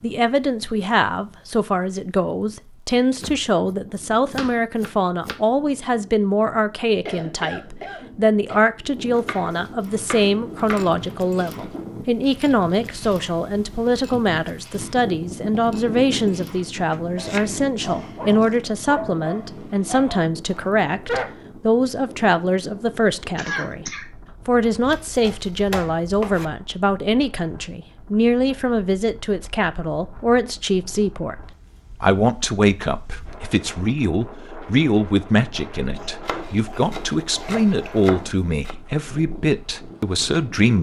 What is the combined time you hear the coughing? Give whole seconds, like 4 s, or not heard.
4 s.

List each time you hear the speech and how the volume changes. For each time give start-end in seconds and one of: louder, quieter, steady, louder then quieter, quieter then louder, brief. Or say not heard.
0.0-23.9 steady
24.4-40.7 steady.